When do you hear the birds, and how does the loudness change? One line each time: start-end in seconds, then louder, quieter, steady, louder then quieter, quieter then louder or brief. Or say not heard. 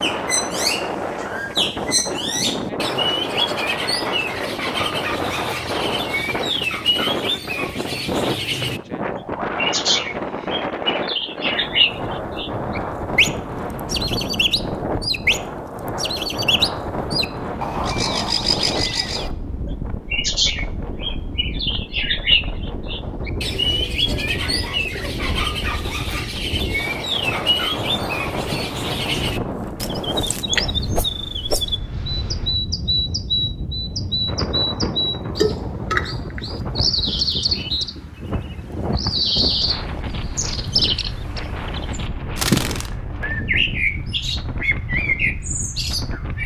0.0-46.4 steady.